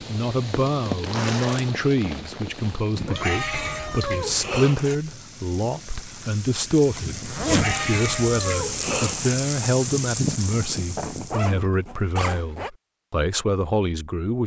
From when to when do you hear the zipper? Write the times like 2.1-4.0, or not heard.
1.1-2.9, 7.2-7.8, 10.9-12.7.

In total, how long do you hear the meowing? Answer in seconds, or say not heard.
4 s.